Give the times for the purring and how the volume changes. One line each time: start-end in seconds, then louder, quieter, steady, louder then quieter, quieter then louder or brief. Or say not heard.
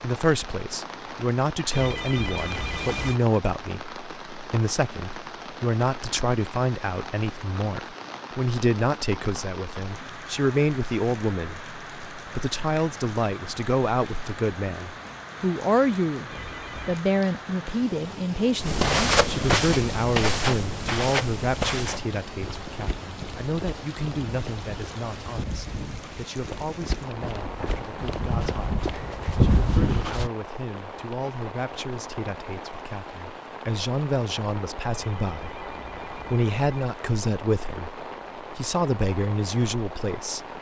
not heard.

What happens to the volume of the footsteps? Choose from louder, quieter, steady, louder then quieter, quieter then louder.
quieter then louder.